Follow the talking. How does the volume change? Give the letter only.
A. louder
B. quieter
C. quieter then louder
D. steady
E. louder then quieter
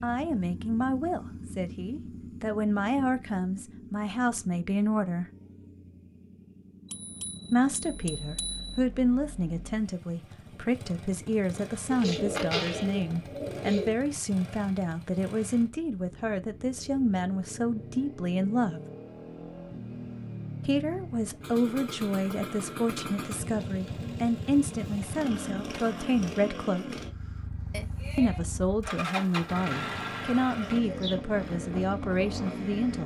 D.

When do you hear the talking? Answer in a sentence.
The talking can be heard from 0.0 to 5.2 s, from 7.5 to 18.8 s, from 20.6 to 26.9 s and from 28.1 to 33.0 s.